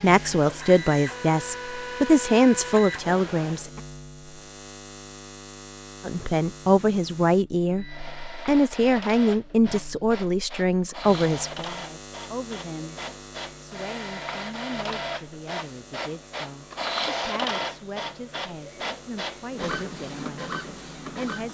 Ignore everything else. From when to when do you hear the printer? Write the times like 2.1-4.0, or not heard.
0.0-3.7, 7.8-21.4.